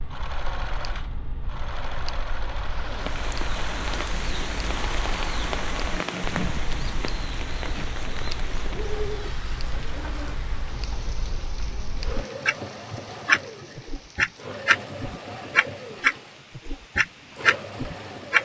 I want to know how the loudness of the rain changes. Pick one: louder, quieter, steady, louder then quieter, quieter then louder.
quieter.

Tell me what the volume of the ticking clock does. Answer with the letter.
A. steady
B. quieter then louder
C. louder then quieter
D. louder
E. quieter
D.